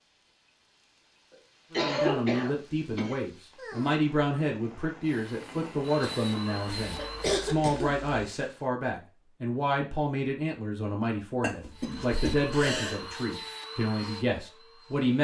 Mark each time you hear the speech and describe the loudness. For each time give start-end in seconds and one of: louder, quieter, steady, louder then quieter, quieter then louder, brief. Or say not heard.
1.7-15.1 steady.